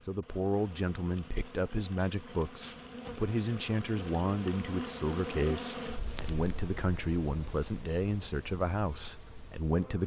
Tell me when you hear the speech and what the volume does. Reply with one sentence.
You can hear the speech from 0.1 to 10.0 s, at a steady volume.